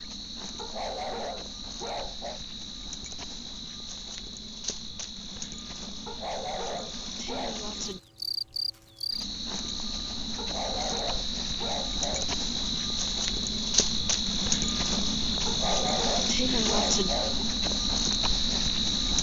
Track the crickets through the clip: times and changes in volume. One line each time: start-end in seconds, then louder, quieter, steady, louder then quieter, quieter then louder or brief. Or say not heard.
0.0-19.1 louder.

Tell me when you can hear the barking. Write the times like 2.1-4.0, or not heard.
0.6-2.4, 6.0-7.7, 10.3-12.3, 15.4-17.4.